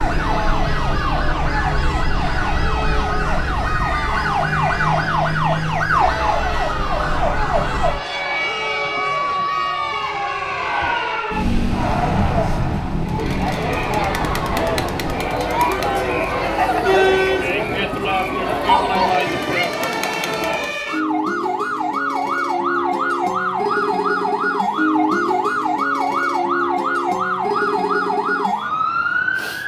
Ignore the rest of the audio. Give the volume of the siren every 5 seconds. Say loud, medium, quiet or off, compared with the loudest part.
loud, loud, medium, medium, loud, loud.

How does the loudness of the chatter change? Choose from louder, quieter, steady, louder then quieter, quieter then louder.
louder.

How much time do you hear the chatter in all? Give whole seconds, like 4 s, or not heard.
21 s.